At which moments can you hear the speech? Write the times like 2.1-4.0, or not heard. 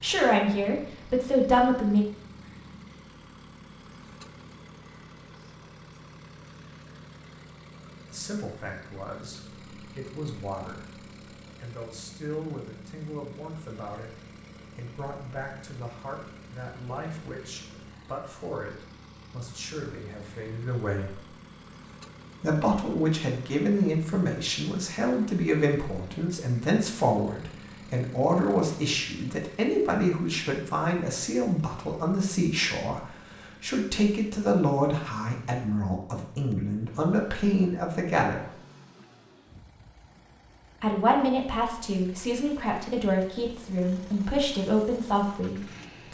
0.0-2.0, 8.1-21.2, 22.4-38.5, 40.8-46.0.